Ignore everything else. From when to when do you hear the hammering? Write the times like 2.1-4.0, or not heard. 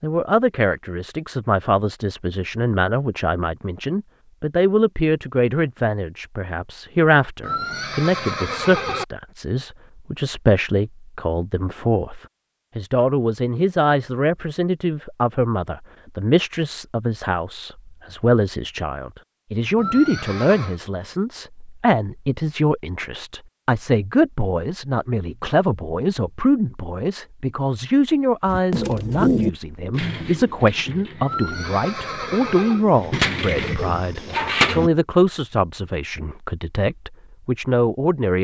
not heard.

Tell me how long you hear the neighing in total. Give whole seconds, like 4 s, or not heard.
4 s.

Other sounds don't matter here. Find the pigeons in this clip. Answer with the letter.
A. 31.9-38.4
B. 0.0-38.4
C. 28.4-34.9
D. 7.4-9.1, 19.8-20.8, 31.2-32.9
C.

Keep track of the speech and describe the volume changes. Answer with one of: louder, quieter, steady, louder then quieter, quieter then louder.
steady.